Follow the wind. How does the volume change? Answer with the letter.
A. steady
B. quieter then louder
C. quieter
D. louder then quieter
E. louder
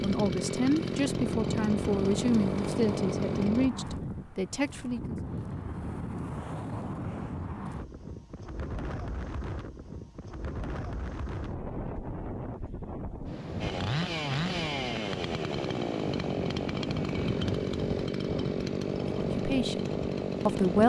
A.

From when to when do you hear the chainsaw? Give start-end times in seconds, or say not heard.
0.0-3.7, 13.6-20.8.